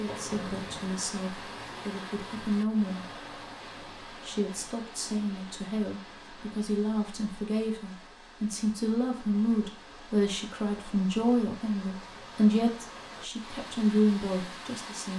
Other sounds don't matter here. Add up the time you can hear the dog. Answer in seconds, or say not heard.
not heard.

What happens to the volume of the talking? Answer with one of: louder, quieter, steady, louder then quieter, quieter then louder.
louder.